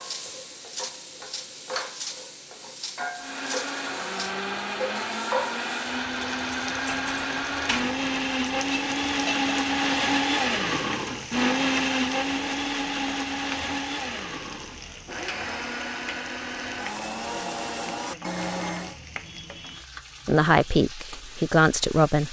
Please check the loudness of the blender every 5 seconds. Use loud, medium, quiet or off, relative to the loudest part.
medium, loud, loud, medium, off.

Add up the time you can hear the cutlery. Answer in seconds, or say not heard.
4 s.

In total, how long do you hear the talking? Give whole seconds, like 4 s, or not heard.
2 s.